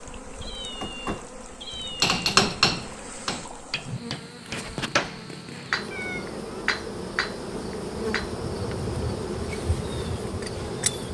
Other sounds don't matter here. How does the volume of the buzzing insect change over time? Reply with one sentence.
The volume of the buzzing insect goes up.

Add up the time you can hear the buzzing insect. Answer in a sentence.
You can hear the buzzing insect for 11 seconds altogether.